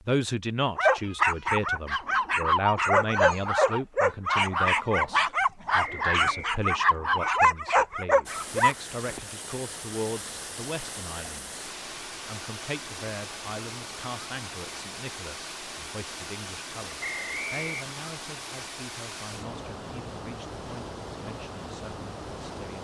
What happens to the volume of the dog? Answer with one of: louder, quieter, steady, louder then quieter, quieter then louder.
steady.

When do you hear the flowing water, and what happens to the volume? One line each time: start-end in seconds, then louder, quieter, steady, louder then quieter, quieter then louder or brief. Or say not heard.
8.2-22.7 steady.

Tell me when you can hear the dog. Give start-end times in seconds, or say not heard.
0.8-8.8.